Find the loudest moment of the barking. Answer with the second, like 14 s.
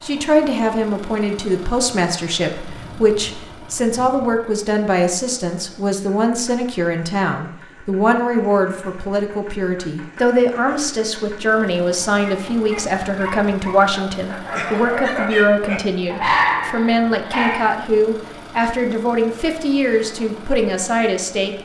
16 s.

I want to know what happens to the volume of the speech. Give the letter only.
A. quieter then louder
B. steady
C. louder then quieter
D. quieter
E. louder
B.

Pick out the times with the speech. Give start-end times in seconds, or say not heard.
0.0-21.6.